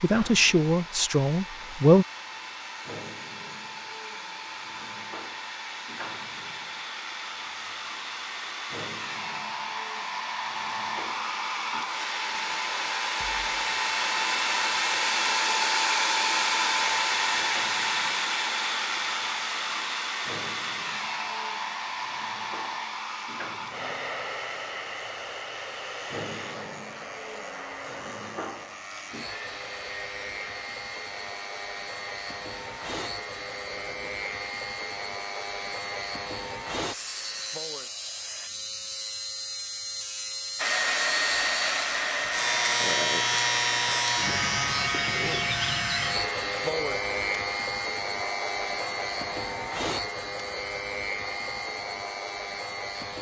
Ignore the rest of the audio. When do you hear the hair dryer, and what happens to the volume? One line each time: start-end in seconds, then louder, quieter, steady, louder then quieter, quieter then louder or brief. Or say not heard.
0.0-38.5 louder then quieter
40.5-53.1 quieter.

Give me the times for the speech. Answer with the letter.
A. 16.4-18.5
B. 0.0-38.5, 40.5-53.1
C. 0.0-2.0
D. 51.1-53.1
C.